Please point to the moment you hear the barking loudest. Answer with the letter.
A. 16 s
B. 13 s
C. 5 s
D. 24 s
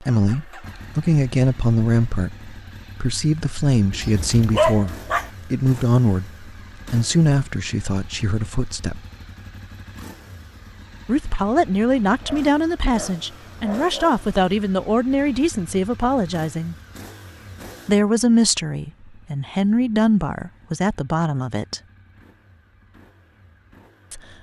C.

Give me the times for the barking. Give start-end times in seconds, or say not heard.
3.9-5.3, 12.2-14.2.